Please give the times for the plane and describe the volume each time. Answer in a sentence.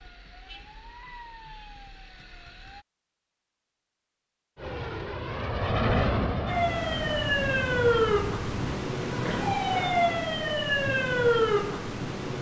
You can hear the plane from 4.5 to 8.8 s, getting louder then quieter.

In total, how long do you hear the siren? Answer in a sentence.
The siren can be heard for 9 seconds in total.